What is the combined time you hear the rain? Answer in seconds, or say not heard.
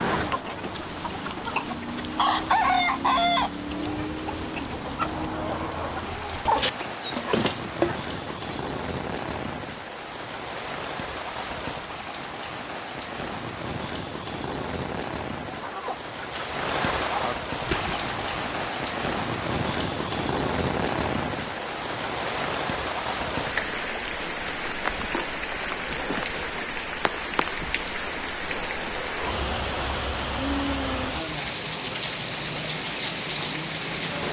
34 s.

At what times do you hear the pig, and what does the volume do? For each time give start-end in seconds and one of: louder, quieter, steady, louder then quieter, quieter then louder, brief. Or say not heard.
not heard.